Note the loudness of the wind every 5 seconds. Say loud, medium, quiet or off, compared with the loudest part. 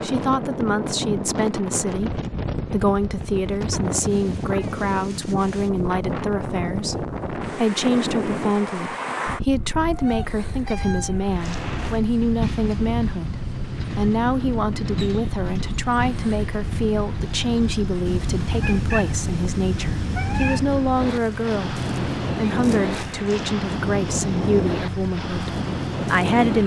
loud, loud, medium, medium, loud, loud.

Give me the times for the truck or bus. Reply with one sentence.
You can hear the truck or bus from 11.2 to 26.6 s.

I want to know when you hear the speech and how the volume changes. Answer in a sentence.
You can hear the speech from 0.0 to 26.6 s, at a steady volume.